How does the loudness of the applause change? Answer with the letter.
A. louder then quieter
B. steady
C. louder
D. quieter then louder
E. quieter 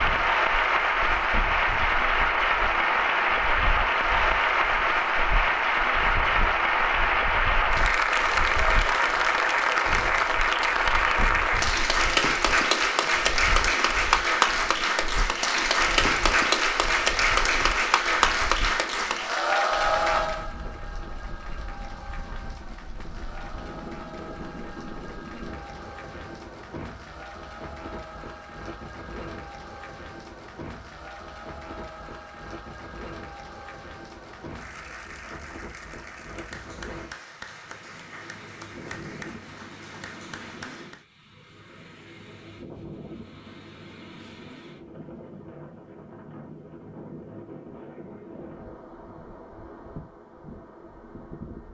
E.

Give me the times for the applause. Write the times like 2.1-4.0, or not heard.
0.0-41.0.